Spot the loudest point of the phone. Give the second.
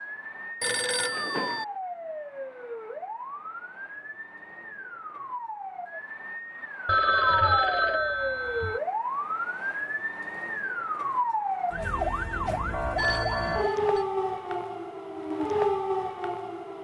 7 s.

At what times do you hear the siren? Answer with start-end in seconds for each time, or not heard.
0.0-16.7.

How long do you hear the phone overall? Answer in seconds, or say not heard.
4 s.